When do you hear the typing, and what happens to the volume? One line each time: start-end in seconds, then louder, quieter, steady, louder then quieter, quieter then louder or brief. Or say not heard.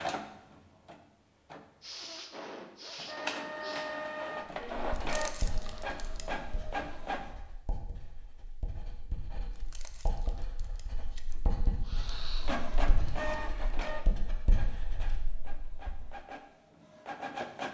not heard.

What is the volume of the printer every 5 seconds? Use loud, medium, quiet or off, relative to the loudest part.
loud, loud, loud, medium.